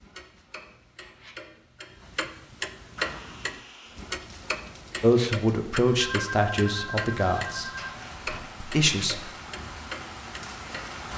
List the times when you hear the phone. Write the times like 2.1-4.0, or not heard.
6.0-8.0.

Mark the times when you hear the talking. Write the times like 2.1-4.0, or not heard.
5.0-7.7, 8.6-9.3.